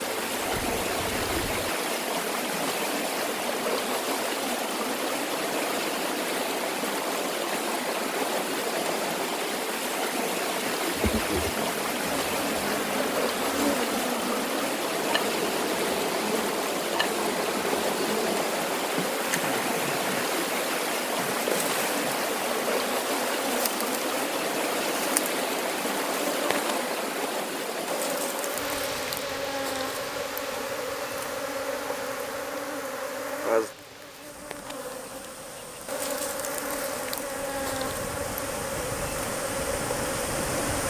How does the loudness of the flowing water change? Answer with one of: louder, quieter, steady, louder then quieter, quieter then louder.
quieter.